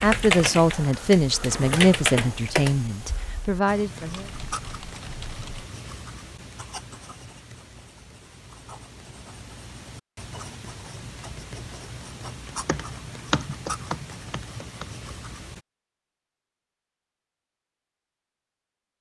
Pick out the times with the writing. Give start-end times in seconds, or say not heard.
3.6-15.6.